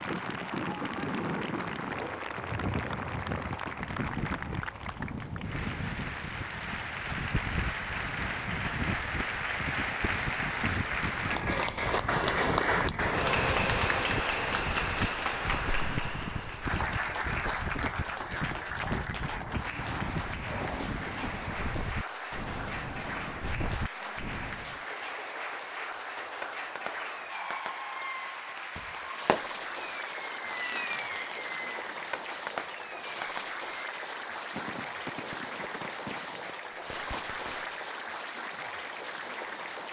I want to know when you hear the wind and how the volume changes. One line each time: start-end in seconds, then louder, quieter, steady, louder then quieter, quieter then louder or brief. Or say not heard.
0.0-24.9 steady.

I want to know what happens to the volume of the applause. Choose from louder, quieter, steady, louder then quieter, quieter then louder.
louder then quieter.